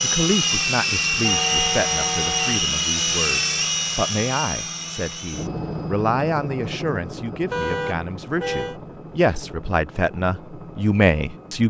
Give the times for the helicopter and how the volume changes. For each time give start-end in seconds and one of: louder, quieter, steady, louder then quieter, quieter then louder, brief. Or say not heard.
0.0-11.6 quieter.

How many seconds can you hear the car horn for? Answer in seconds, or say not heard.
3 s.